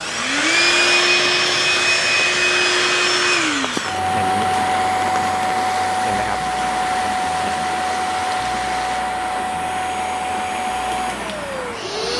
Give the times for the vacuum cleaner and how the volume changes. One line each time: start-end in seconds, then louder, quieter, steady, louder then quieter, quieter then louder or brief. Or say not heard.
0.0-12.1 quieter.